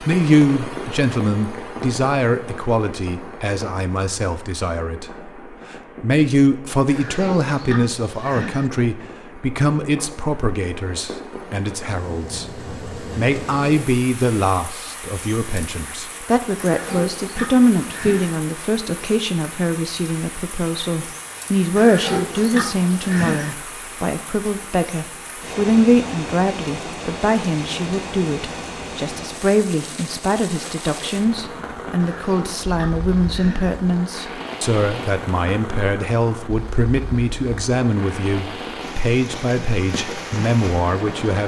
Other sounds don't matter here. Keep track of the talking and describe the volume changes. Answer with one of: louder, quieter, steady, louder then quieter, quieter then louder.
steady.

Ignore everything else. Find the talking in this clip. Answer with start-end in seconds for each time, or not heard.
0.0-41.4.